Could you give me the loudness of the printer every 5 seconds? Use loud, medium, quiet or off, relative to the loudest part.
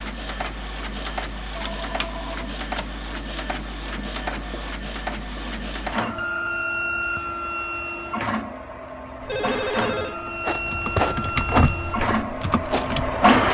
medium, medium, loud.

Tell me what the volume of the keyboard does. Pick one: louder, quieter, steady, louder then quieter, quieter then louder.
louder then quieter.